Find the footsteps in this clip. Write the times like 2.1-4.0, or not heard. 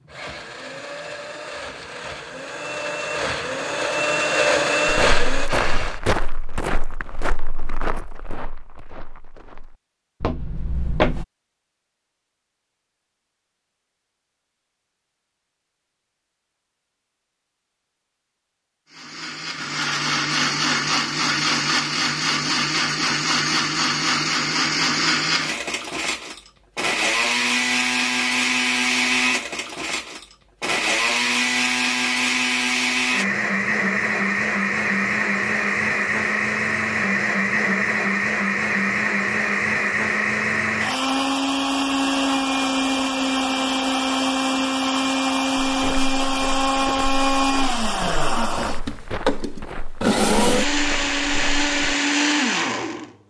4.8-11.2, 45.6-51.7.